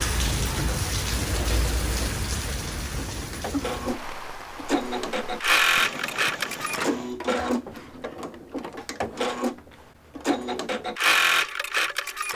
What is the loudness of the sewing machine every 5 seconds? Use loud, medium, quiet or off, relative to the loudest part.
medium, loud, loud.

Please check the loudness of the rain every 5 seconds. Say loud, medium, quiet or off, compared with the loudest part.
loud, medium, off.